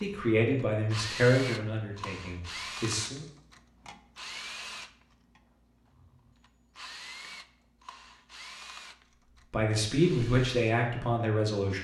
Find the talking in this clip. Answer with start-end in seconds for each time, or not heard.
0.0-3.2, 9.5-11.7.